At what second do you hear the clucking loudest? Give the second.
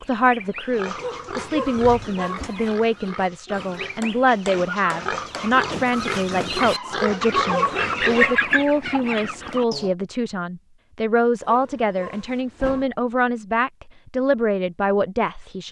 8 s.